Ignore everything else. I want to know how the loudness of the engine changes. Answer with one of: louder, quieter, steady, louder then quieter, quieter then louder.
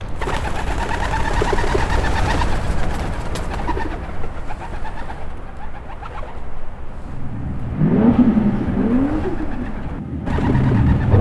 quieter then louder.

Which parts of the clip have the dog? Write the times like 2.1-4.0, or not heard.
not heard.